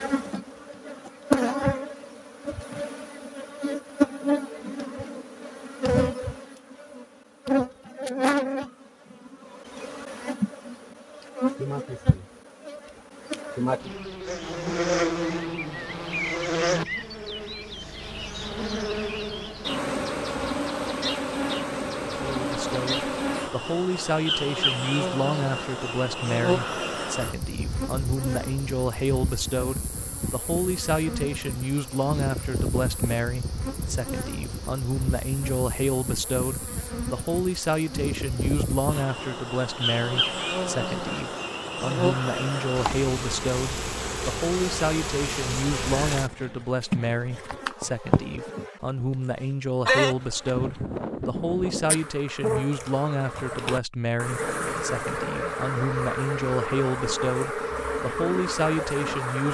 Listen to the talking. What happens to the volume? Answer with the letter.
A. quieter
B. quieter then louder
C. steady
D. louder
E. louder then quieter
C.